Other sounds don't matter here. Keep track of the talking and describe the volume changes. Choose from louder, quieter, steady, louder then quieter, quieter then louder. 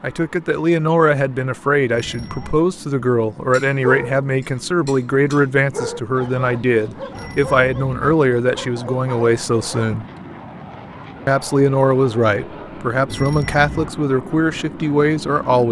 steady.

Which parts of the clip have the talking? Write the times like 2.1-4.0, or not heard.
0.0-10.1, 11.2-15.6.